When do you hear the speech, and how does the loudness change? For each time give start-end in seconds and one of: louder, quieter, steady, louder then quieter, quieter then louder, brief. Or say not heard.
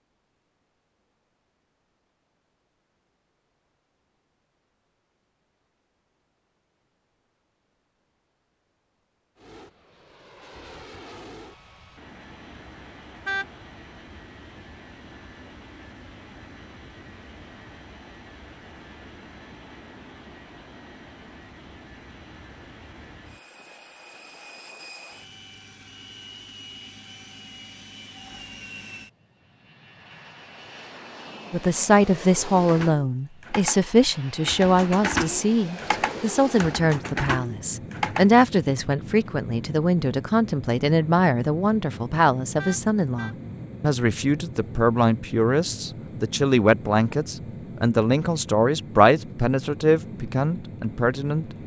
31.5-51.5 steady.